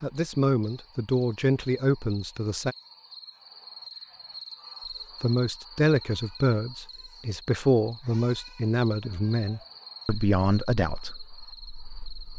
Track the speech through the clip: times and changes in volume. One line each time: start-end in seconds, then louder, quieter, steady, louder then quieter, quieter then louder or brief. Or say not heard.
0.0-2.8 brief
5.2-12.3 quieter.